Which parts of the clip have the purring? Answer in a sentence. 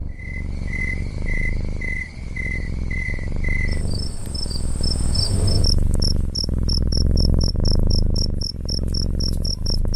The purring can be heard from 0.0 to 9.9 s.